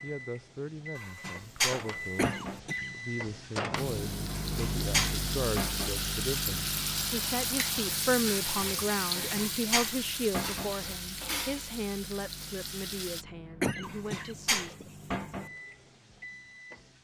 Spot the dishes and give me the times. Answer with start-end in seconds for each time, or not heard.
0.9-2.6, 4.3-6.0, 9.2-10.7, 13.8-15.5.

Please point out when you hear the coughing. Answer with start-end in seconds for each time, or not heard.
2.1-2.9, 13.6-14.8.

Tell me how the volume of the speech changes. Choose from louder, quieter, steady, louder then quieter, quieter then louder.
louder then quieter.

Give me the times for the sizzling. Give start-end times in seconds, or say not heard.
3.8-13.2.